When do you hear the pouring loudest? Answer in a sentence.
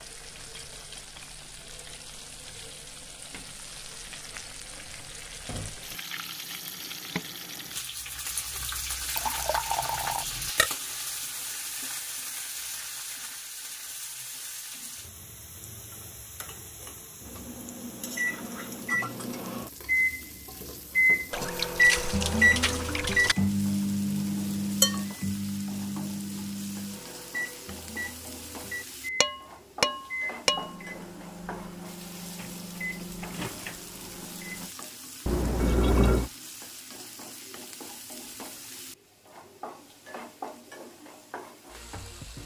The volume of the pouring peaks at 36 seconds.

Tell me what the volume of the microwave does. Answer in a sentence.
The volume of the microwave goes up, then down.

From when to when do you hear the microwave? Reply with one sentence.
You can hear the microwave from 17.2 to 34.7 s.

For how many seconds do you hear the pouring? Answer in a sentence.
You can hear the pouring for 4 seconds altogether.